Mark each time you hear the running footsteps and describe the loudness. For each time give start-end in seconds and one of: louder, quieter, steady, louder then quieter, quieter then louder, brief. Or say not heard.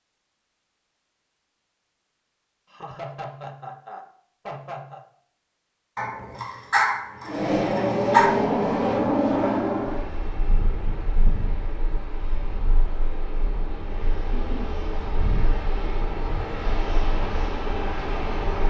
not heard.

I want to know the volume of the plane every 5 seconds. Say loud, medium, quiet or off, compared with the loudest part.
off, loud, quiet, medium.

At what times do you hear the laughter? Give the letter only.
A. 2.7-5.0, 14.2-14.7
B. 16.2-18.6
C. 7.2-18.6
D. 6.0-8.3
A.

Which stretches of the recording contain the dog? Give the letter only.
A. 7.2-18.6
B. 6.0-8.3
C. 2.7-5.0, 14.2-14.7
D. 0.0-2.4
B.